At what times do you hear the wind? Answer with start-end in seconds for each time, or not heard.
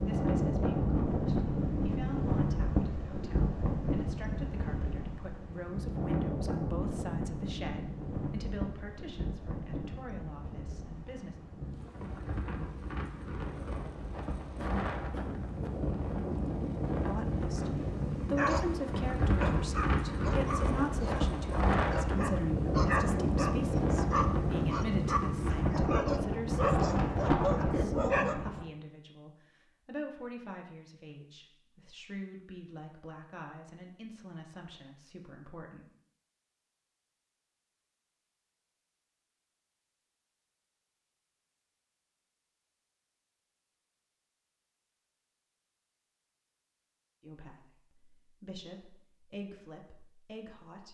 0.0-28.6.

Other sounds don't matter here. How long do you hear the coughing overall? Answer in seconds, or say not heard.
2 s.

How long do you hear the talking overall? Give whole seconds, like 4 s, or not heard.
34 s.